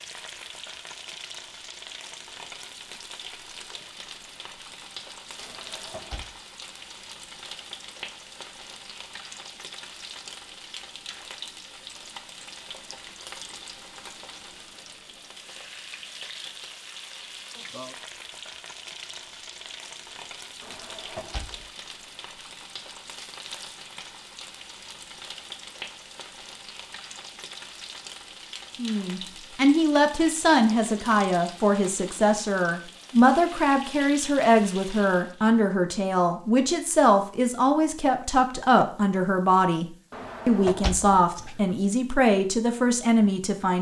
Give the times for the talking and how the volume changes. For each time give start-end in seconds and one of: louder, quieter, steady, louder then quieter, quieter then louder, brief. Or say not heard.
28.8-43.7 steady.